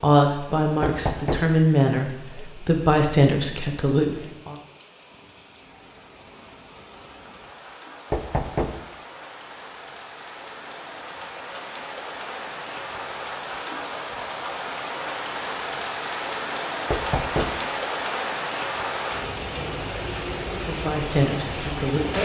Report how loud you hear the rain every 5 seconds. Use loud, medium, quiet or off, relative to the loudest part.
quiet, quiet, medium, loud, loud.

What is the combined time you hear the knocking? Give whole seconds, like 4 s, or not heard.
2 s.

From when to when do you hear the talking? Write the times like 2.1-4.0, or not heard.
0.0-4.5, 20.6-22.1.